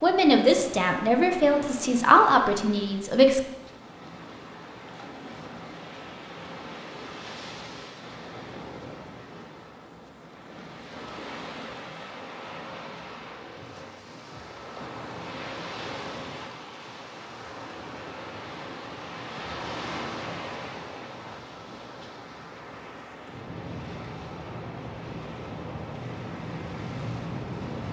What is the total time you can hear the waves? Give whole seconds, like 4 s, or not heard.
28 s.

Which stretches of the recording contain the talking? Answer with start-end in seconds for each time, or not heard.
0.0-3.4.